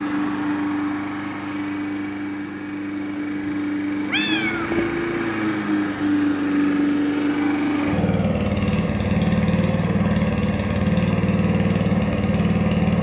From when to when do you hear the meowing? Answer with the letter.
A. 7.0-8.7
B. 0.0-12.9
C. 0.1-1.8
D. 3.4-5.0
D.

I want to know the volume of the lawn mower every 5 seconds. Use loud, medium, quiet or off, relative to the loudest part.
medium, loud, loud.